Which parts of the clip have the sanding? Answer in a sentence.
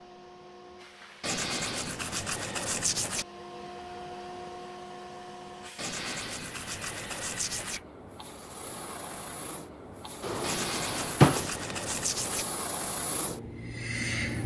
You can hear the sanding from 1.2 to 3.2 s, from 5.8 to 7.8 s and from 10.4 to 12.4 s.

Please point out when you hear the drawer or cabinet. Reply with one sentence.
You can hear the drawer or cabinet from 10.2 to 11.8 s.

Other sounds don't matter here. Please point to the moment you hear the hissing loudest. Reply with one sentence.
The volume of the hissing peaks at 14 seconds.